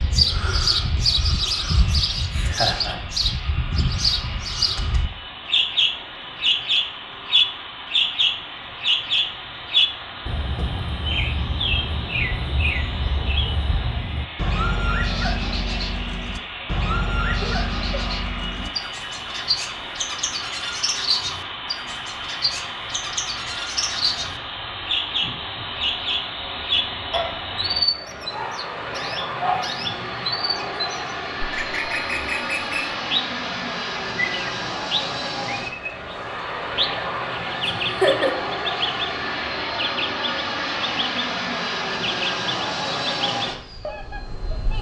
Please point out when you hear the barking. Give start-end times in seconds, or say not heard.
not heard.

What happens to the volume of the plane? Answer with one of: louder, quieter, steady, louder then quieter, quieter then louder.
louder.